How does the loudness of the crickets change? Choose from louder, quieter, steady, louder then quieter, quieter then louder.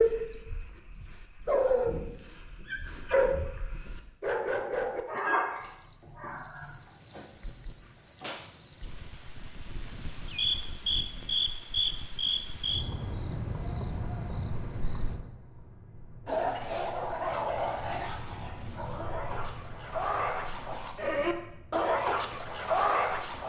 louder then quieter.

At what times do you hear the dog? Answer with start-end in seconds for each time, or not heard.
0.0-6.8, 16.2-23.4.